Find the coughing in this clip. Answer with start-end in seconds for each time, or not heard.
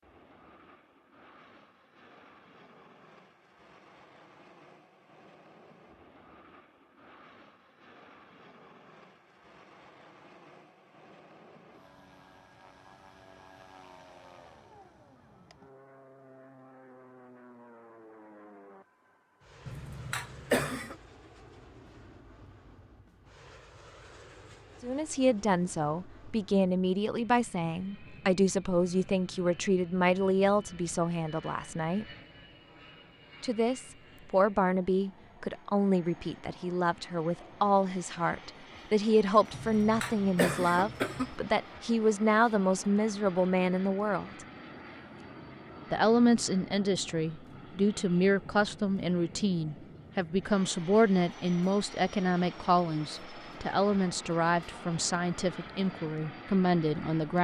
19.6-20.9, 39.5-41.4.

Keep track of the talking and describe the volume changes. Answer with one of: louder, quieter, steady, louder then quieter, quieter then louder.
steady.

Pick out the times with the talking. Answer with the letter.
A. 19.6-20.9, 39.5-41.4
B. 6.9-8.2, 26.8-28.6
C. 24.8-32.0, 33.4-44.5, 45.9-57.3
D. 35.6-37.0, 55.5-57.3
C.